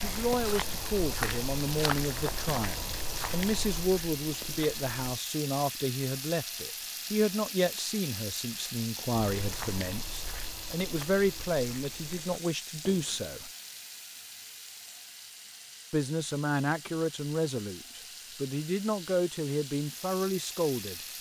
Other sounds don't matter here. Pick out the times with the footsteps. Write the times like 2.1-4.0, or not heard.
0.0-5.0, 9.1-13.3.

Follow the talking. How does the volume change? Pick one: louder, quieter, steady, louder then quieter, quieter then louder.
steady.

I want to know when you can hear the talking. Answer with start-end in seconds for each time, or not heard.
0.0-13.5, 15.9-21.0.